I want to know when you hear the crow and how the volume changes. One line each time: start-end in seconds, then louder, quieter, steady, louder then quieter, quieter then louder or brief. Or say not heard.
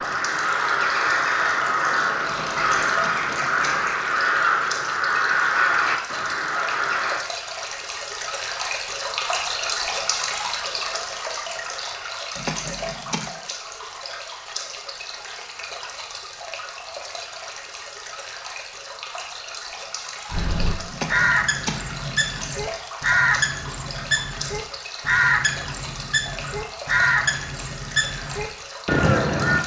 0.0-7.2 steady
20.3-29.6 steady.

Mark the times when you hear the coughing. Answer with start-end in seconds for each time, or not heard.
2.2-3.9, 12.3-13.3, 20.9-22.6.